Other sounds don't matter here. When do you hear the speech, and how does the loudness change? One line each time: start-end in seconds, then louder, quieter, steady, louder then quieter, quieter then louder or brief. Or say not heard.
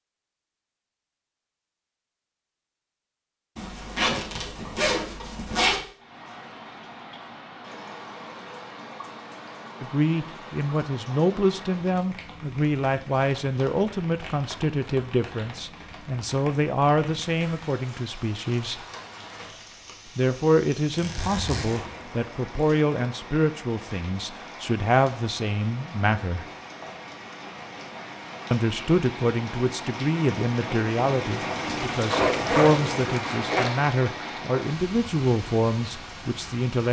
9.8-18.9 steady
20.1-26.4 steady
28.5-36.8 steady.